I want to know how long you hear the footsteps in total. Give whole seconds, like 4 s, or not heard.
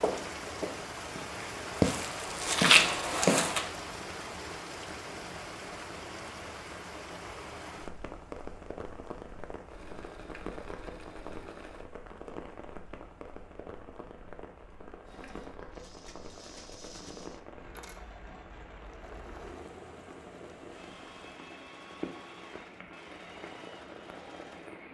4 s.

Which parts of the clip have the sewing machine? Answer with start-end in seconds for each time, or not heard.
9.7-11.9, 15.1-24.8.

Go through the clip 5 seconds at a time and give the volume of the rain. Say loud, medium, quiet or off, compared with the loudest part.
loud, loud, medium, medium, medium.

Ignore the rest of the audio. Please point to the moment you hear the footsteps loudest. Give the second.
3 s.